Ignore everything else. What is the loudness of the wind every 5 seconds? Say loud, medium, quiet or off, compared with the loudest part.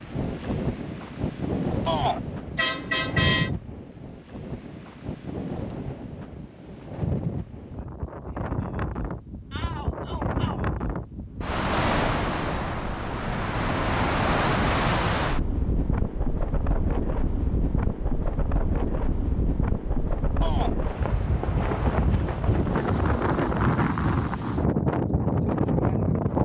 medium, medium, loud, medium, loud, loud.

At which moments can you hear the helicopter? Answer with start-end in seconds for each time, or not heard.
not heard.